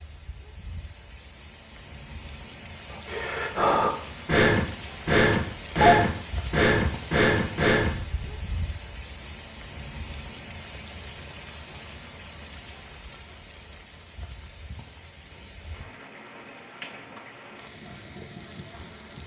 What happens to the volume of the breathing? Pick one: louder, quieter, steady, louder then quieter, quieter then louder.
steady.